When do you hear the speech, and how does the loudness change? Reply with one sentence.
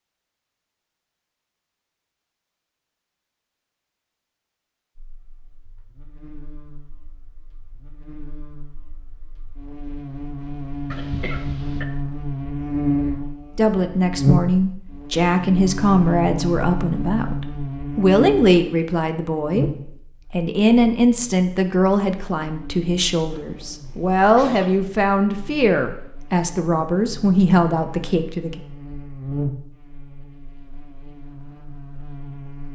You can hear the speech from 13.6 to 28.6 s, at a steady volume.